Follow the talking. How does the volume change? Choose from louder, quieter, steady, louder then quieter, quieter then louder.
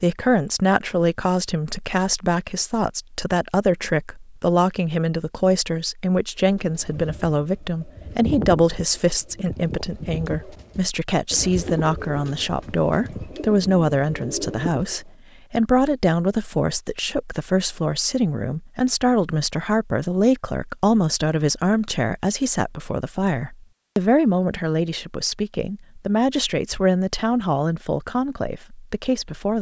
steady.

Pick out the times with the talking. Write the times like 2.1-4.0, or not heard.
0.0-29.5.